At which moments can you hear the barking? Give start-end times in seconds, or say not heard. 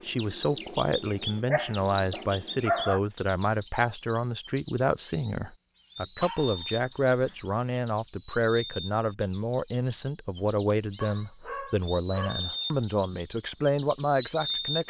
1.4-3.0, 6.2-7.6, 11.0-12.7.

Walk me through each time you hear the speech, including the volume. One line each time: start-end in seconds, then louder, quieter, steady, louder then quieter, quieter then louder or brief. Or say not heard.
0.0-14.8 steady.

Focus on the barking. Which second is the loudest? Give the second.
3 s.